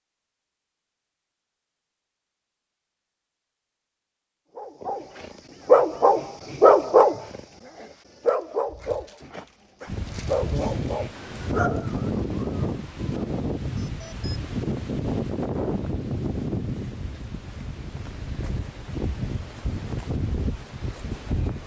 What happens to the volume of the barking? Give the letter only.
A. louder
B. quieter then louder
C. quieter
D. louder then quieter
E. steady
C.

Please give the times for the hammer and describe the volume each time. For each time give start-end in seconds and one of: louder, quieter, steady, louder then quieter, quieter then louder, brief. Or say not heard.
not heard.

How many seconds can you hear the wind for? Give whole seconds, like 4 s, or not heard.
12 s.